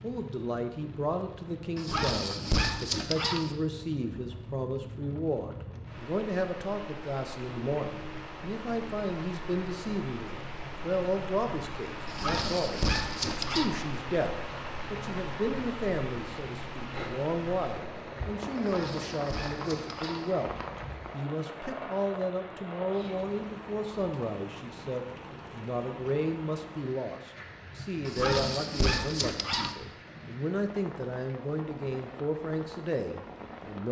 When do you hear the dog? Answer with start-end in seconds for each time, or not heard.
1.8-3.5, 12.1-13.7, 18.6-20.4, 28.1-29.8.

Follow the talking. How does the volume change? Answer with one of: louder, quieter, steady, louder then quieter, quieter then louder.
steady.